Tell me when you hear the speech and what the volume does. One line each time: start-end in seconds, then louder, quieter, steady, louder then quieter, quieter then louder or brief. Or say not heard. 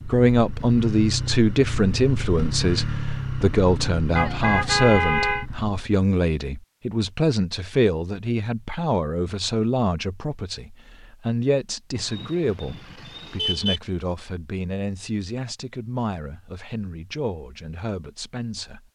0.1-18.9 quieter.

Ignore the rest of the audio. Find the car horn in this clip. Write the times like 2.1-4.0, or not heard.
4.2-5.5, 11.9-13.8.